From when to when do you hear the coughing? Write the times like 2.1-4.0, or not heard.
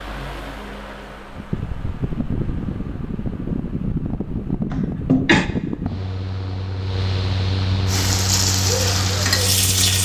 4.7-5.5.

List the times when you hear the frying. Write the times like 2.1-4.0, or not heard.
7.8-10.0.